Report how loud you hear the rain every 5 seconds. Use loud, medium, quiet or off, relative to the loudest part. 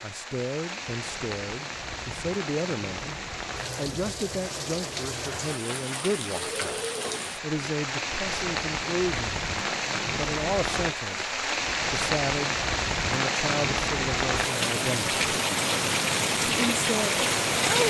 medium, medium, loud, loud.